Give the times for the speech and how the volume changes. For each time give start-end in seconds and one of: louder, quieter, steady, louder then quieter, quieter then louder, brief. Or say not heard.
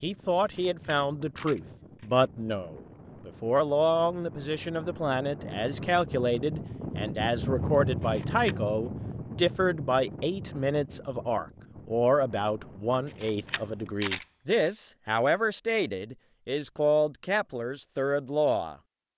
0.0-18.8 steady.